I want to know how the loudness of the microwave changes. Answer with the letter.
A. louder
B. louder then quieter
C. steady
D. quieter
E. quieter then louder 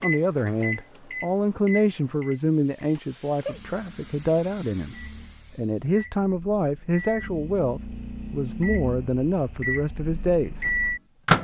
E.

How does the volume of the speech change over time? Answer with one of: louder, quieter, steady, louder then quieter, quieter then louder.
steady.